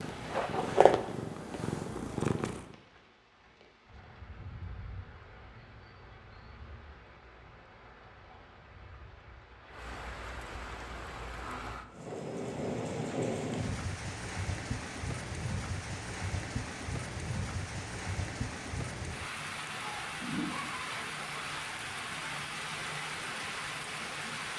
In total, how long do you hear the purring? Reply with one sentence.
You can hear the purring for 3 seconds altogether.